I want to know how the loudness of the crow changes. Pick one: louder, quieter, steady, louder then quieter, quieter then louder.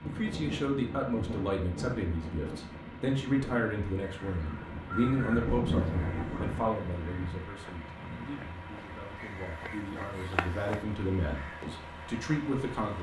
quieter then louder.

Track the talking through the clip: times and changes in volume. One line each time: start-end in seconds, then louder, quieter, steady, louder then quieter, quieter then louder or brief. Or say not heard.
0.0-12.9 quieter then louder.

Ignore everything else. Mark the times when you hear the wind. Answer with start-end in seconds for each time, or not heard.
0.0-6.7.